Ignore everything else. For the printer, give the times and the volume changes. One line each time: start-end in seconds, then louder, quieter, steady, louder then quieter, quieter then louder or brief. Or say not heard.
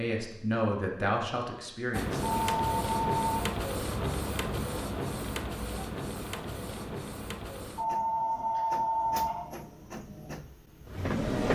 1.9-11.4 quieter.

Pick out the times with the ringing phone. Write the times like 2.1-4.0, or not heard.
2.2-3.4, 7.8-9.4.